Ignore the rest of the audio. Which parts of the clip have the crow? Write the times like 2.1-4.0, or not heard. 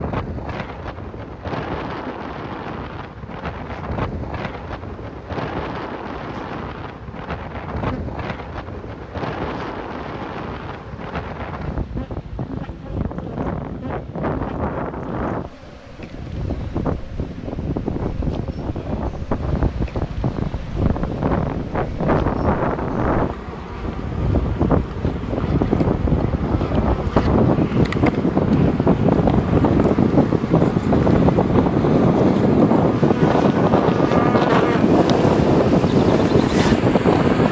not heard.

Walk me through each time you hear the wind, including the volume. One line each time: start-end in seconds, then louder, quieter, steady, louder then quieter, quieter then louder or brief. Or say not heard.
0.0-37.4 louder.